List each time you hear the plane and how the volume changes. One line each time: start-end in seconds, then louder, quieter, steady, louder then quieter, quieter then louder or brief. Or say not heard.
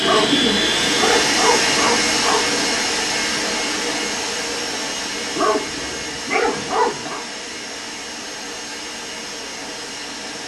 0.0-10.4 quieter.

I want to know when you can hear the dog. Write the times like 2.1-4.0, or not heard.
0.0-2.5, 5.3-7.2.